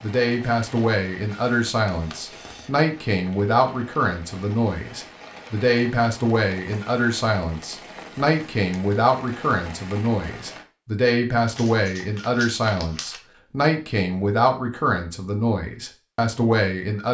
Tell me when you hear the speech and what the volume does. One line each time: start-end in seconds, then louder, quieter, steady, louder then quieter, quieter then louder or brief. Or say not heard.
0.0-17.0 steady.